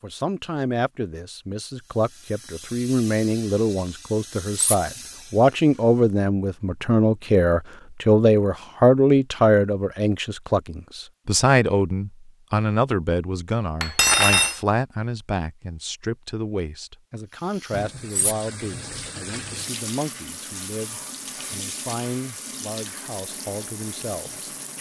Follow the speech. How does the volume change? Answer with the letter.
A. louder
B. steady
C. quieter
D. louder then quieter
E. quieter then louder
D.